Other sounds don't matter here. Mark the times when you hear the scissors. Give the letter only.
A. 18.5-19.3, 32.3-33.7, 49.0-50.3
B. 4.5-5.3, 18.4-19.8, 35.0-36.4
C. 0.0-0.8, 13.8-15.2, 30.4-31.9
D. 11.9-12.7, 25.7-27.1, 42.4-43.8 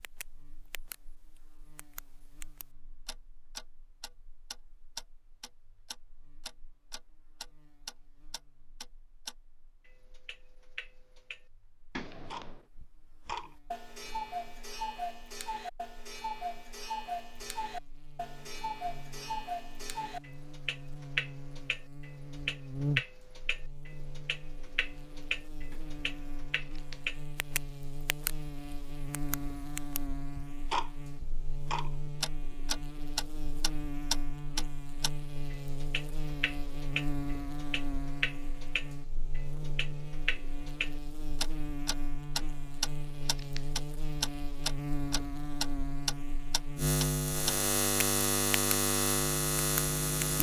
D.